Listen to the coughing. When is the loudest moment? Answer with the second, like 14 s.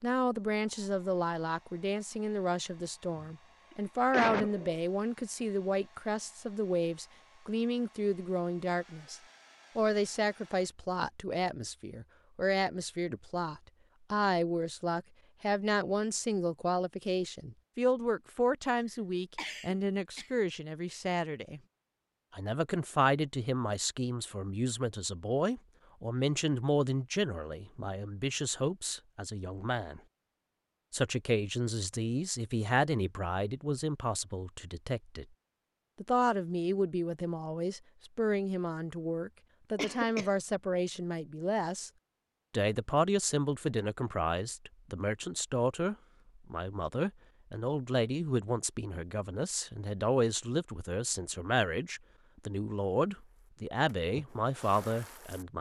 4 s.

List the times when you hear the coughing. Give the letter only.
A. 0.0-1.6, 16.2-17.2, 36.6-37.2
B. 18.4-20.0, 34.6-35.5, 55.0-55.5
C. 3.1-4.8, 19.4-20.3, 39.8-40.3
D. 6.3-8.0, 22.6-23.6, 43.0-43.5
C.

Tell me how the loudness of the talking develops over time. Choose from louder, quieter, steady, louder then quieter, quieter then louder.
steady.